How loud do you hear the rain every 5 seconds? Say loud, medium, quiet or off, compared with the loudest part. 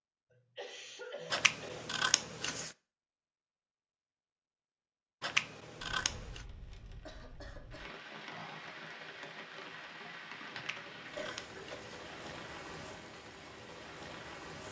off, loud, loud.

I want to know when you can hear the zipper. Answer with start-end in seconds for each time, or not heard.
not heard.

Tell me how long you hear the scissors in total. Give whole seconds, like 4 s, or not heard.
4 s.